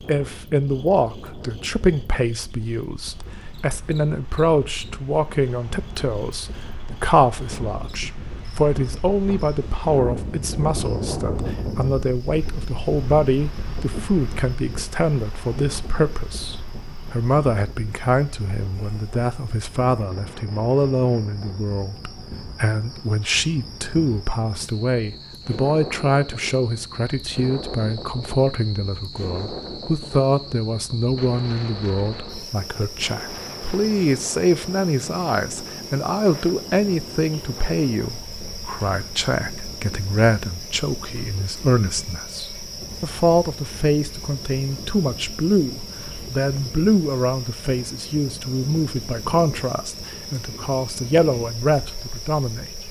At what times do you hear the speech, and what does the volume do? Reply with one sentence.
The speech can be heard from 0.1 to 52.8 s, at a steady volume.